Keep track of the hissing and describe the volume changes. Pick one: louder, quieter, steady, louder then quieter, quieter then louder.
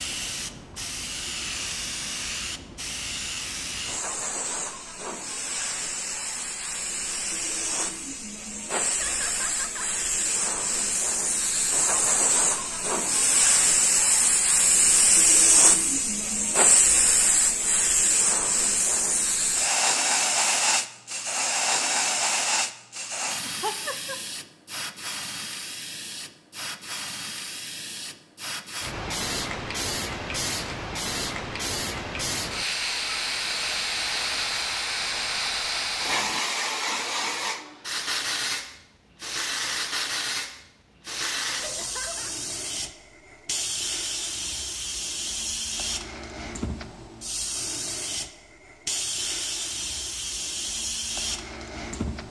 louder then quieter.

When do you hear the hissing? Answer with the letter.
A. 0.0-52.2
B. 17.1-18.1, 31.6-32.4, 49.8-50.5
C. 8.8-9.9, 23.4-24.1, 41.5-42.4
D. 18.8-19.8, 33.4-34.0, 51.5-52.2
A.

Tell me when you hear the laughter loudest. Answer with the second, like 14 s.
24 s.